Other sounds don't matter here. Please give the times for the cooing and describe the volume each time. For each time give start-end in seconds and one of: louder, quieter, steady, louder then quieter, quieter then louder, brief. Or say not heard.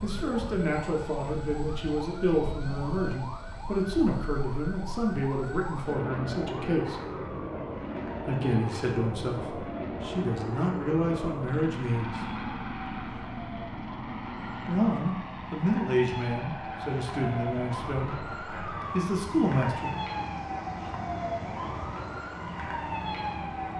not heard.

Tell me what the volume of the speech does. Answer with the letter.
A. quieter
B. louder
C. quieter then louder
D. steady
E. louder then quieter
D.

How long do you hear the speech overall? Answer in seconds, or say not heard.
16 s.